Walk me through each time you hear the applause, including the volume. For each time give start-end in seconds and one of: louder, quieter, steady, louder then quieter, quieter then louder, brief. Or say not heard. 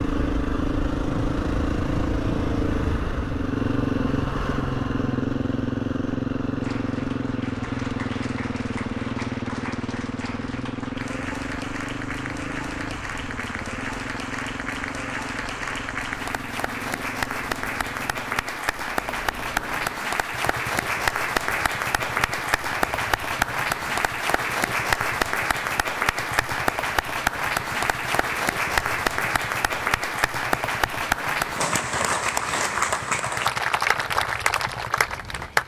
6.5-35.6 louder.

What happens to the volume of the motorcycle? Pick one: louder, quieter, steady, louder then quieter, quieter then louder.
quieter.